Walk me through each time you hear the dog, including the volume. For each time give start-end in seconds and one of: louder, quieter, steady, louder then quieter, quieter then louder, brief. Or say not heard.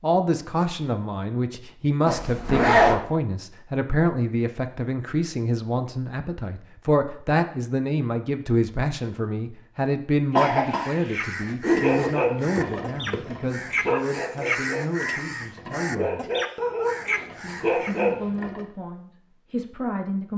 11.7-18.6 quieter then louder.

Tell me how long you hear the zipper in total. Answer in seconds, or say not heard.
3 s.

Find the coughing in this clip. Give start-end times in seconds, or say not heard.
10.3-11.2.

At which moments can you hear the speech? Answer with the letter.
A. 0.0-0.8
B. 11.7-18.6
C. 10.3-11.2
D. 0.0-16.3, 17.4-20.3
D.